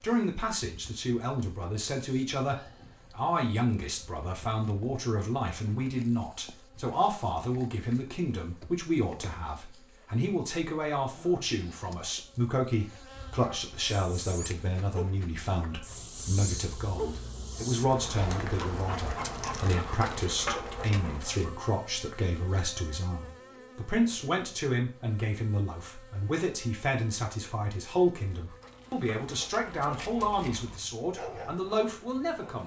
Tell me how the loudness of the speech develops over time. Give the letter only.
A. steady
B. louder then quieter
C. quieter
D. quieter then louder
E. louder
A.